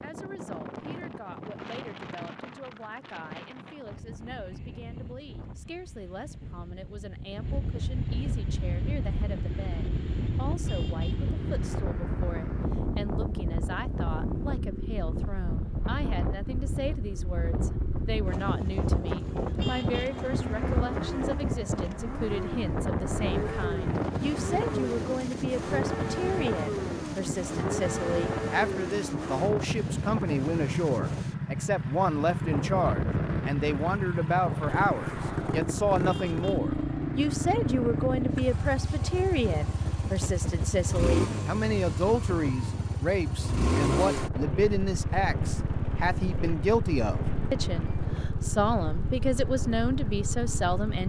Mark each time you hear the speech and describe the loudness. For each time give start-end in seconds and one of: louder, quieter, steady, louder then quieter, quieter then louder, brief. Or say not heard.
0.0-51.0 louder.